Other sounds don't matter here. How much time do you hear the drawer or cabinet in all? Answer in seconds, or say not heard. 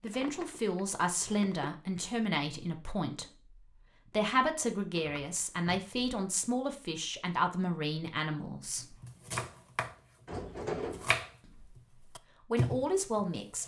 4 s.